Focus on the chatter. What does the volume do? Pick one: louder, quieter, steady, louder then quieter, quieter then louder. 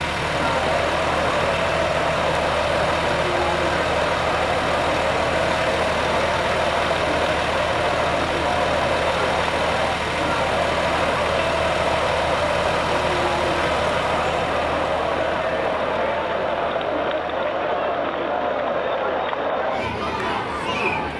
steady.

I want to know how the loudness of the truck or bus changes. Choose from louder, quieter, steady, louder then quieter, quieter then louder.
quieter.